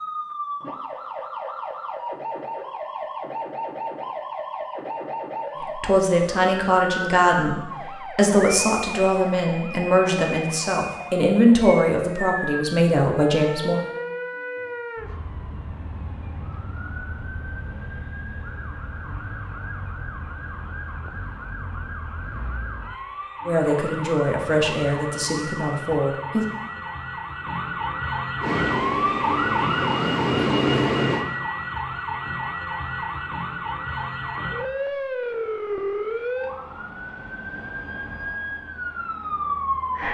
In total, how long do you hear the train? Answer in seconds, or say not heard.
3 s.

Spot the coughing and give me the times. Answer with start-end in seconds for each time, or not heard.
not heard.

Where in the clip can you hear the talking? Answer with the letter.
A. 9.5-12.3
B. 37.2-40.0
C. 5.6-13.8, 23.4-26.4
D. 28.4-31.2
C.